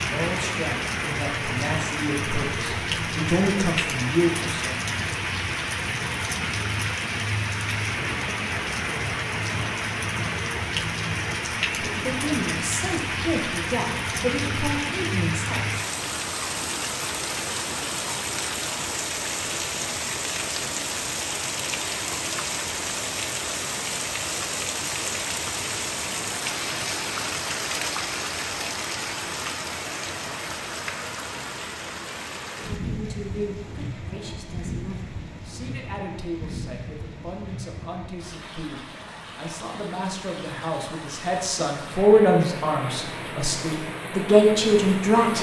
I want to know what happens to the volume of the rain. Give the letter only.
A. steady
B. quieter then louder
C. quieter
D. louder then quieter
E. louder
C.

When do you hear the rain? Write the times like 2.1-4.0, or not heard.
0.0-45.3.